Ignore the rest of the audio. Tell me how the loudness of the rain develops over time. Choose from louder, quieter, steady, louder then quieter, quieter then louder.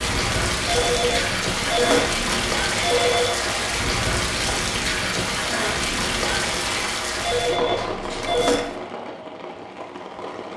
quieter.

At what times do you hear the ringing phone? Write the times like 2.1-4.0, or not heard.
0.7-3.4, 7.2-8.8.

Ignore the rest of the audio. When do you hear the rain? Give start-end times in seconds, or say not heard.
0.0-10.5.